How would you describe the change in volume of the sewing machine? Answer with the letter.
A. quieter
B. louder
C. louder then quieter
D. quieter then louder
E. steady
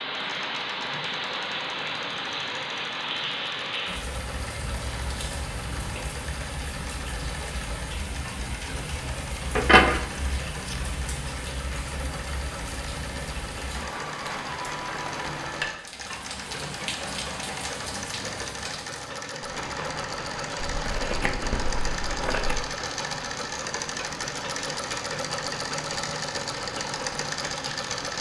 B.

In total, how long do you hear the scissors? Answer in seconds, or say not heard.
3 s.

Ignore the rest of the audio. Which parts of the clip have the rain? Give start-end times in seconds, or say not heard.
0.0-28.1.